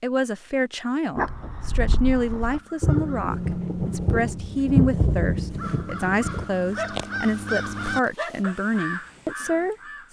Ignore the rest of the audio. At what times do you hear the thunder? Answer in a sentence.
You can hear the thunder from 2.8 to 6.5 s.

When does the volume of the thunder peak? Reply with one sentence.
The loudest moment of the thunder is at 5 seconds.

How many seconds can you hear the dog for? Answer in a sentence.
You can hear the dog for 3 seconds altogether.